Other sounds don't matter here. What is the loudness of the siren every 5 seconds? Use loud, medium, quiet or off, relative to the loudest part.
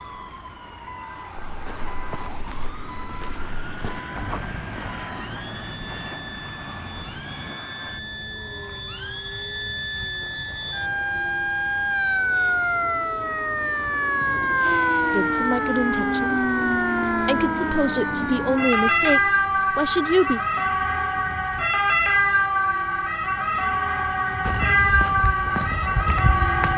quiet, quiet, loud, loud, loud, loud.